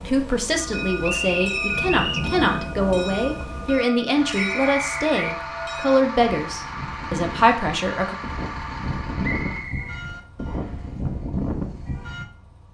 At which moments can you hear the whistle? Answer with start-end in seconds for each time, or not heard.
1.0-2.3, 4.3-5.3, 9.2-10.7.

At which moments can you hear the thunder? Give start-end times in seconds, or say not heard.
1.7-3.6.